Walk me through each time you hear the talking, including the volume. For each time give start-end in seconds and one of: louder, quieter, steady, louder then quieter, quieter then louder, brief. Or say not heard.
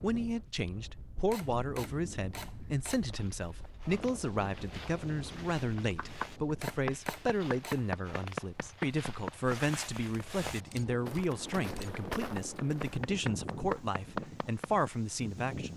0.0-15.7 steady.